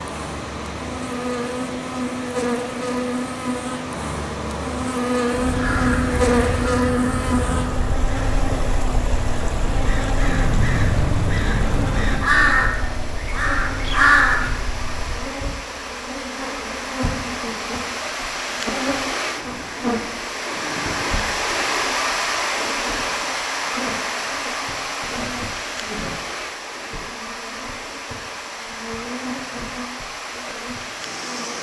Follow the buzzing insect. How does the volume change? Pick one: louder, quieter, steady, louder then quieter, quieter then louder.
quieter.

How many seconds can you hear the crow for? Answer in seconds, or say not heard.
9 s.